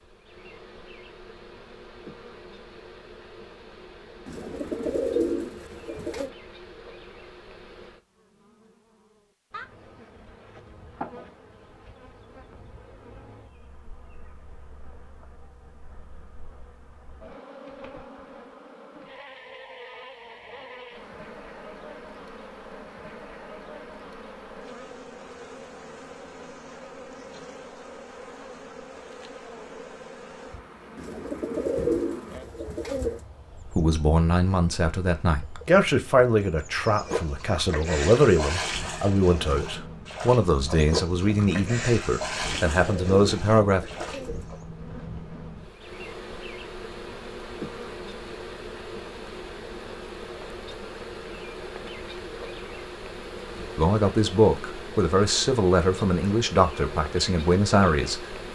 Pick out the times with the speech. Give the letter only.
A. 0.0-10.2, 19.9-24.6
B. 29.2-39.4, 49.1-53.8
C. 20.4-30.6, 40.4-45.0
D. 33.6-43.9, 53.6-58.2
D.